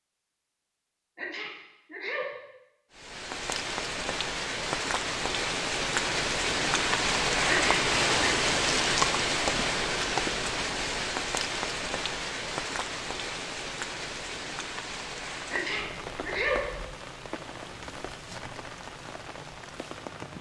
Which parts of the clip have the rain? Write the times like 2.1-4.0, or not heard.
2.9-20.3.